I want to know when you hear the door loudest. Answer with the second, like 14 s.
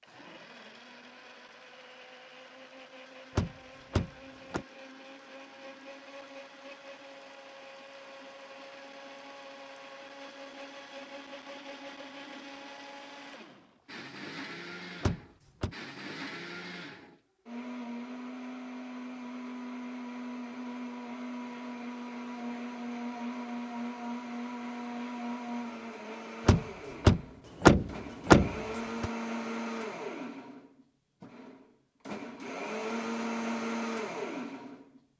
28 s.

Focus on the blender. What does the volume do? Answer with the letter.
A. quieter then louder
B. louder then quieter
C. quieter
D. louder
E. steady
D.